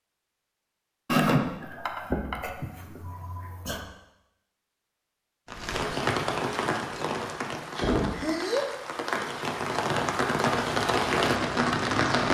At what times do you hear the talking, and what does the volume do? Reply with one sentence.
You can't hear the talking here.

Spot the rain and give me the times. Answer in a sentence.
You can hear the rain from 5.5 to 12.2 s.